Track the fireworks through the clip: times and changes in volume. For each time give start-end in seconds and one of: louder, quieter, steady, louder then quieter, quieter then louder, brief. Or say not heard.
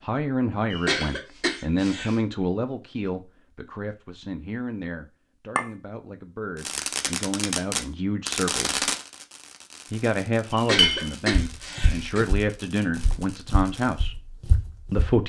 6.5-14.1 quieter.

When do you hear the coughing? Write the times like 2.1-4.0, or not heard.
0.7-2.2, 10.5-12.2.